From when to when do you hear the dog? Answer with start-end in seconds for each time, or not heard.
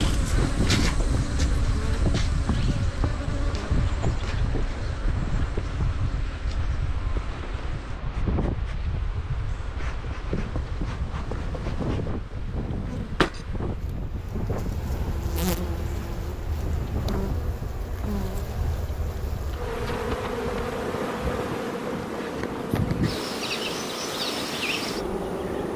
not heard.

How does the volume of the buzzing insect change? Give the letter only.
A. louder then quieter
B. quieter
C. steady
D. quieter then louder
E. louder
D.